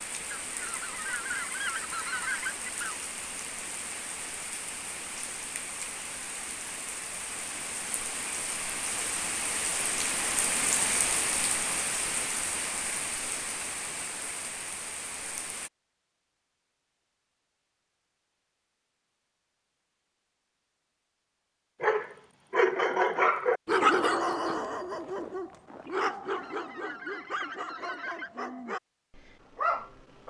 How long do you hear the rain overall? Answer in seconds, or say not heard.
16 s.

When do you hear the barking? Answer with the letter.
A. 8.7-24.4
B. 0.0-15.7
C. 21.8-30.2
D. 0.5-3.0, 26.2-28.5
C.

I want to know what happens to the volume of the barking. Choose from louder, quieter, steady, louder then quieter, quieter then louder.
quieter then louder.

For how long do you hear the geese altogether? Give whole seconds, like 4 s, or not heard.
5 s.